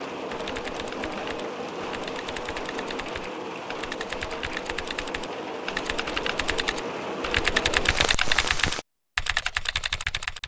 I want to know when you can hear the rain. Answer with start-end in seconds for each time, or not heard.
0.0-8.8.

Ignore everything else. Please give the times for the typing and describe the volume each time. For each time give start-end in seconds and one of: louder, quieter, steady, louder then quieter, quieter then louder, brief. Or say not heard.
0.3-10.4 louder.